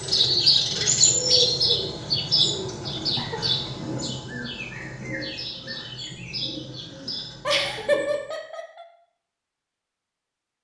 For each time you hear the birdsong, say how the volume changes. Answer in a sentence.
You can hear the birdsong from 0.0 to 8.3 s, getting quieter.